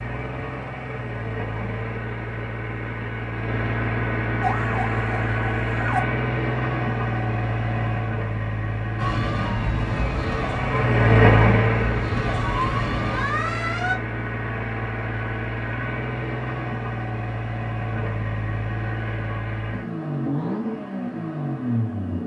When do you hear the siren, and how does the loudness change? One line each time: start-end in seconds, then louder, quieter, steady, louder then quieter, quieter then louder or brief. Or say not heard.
4.4-6.0 brief
8.9-13.9 quieter then louder.